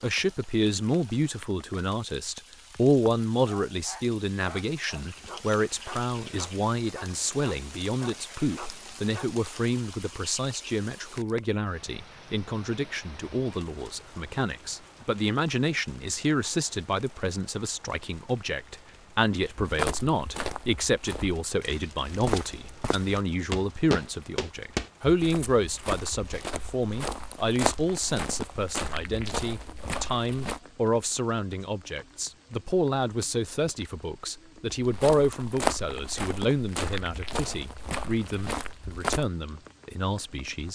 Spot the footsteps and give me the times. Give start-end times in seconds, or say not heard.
19.6-30.6, 34.8-39.3.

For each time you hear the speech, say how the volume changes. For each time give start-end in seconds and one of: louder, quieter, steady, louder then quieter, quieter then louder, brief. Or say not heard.
0.0-40.7 steady.